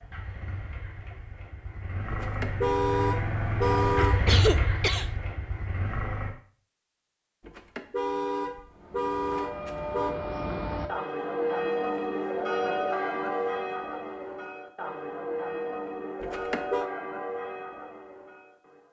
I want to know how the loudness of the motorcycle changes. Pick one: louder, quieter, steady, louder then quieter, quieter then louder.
louder then quieter.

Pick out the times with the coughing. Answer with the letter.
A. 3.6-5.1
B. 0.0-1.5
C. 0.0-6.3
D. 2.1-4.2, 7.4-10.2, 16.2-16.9
A.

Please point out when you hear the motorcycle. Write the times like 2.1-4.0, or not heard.
0.0-6.3.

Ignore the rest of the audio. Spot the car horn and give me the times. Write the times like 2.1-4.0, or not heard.
2.1-4.2, 7.4-10.2, 16.2-16.9.